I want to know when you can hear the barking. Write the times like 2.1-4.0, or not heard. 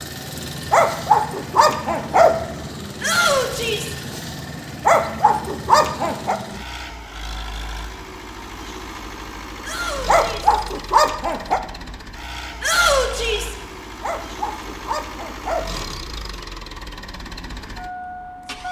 0.7-2.4, 4.8-6.4, 10.1-11.6, 14.0-16.0.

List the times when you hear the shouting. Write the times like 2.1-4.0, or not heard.
3.0-4.0, 9.6-10.6, 12.6-13.6.